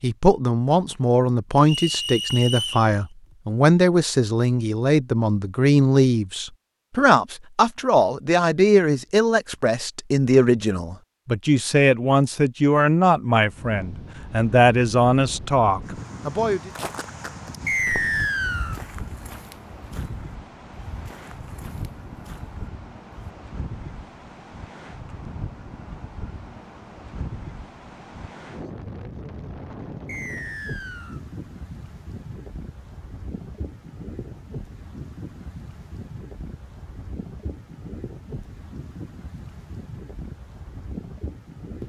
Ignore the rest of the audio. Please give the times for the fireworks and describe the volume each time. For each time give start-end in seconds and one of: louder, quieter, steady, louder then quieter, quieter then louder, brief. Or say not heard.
not heard.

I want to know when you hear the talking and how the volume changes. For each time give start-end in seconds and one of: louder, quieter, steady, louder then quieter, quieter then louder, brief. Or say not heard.
0.0-16.7 steady.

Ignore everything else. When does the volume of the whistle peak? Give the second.
18 s.